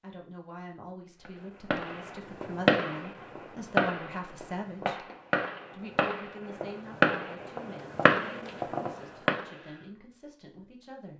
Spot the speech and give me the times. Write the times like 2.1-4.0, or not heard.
0.0-5.0, 5.7-11.1.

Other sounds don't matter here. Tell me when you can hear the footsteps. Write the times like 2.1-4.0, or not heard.
not heard.